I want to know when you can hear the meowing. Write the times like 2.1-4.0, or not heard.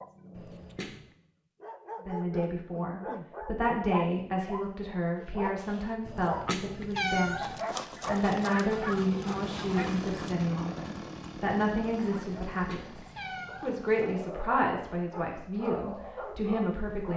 0.3-1.1, 6.0-7.6, 12.5-13.8.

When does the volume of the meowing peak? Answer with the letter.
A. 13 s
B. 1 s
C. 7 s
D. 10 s
C.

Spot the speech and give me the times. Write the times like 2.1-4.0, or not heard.
2.0-17.1.